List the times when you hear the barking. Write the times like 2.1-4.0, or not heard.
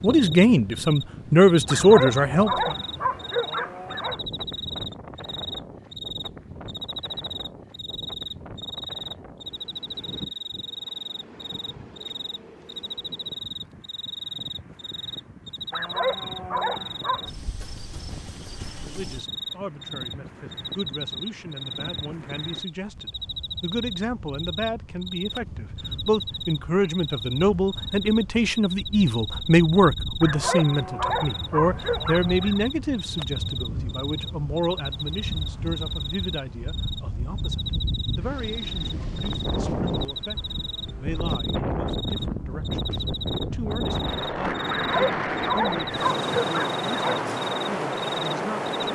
1.6-4.2, 15.7-17.3, 30.2-32.6, 44.8-47.3.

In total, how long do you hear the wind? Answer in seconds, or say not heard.
49 s.